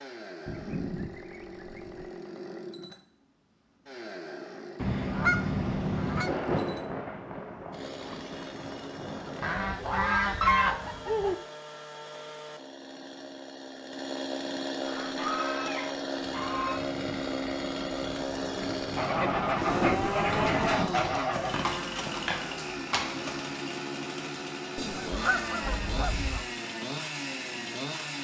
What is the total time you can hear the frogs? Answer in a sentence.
The frogs can't be heard in this clip.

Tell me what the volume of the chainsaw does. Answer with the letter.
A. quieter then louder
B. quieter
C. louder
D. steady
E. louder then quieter
C.